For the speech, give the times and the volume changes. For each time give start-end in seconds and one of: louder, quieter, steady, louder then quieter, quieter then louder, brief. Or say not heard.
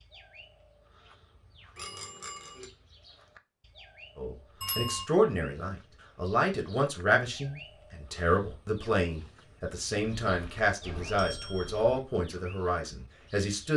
4.2-13.7 steady.